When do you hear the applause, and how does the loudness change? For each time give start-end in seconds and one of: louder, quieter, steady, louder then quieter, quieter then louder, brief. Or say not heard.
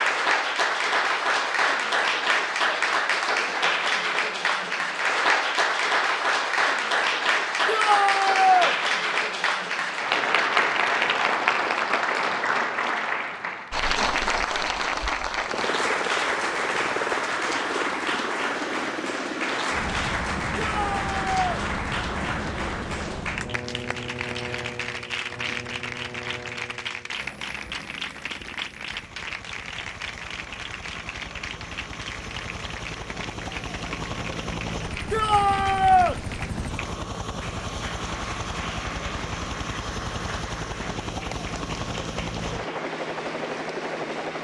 0.0-44.3 quieter.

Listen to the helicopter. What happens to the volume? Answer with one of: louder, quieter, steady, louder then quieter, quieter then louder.
quieter then louder.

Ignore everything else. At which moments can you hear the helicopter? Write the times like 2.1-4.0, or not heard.
15.4-44.3.